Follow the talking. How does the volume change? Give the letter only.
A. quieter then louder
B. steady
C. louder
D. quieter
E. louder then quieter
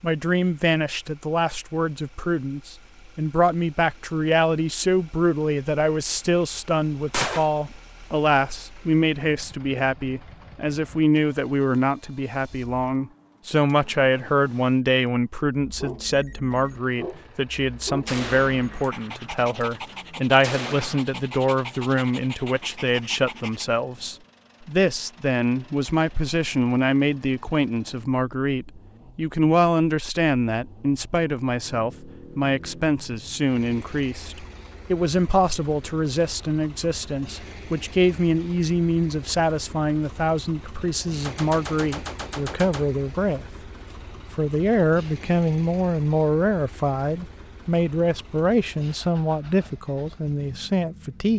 B.